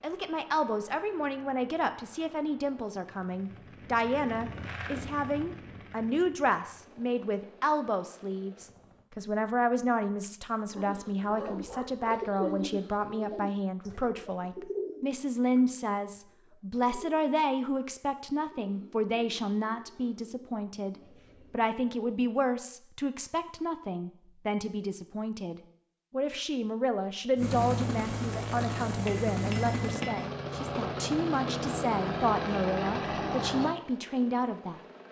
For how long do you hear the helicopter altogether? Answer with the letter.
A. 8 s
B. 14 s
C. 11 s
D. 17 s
D.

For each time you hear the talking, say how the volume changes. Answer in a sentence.
The talking can be heard from 0.0 to 34.8 s, at a steady volume.